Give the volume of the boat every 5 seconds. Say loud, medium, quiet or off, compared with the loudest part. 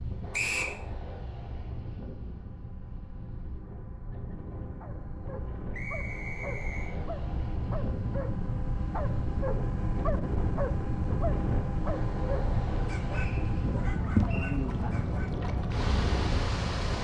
quiet, medium, loud, loud.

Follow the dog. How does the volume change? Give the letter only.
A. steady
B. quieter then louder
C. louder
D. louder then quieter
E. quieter
D.